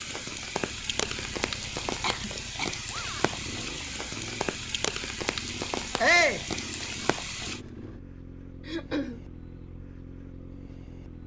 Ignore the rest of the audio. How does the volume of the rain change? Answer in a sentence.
The loudness of the rain stays about the same.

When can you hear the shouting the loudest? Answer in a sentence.
The volume of the shouting peaks at 6 seconds.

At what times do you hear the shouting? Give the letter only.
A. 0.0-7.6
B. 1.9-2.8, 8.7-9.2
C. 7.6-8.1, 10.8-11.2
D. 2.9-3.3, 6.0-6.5
D.